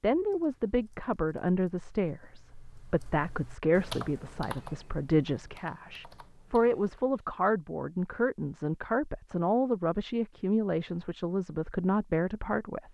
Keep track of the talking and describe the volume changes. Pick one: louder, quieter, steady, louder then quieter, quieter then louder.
steady.